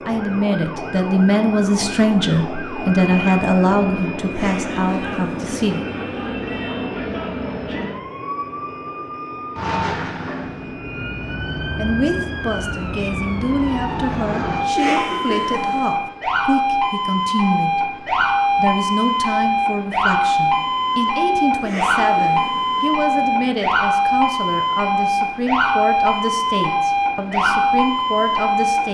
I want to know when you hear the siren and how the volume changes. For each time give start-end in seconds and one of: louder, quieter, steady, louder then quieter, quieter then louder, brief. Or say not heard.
0.0-28.9 louder.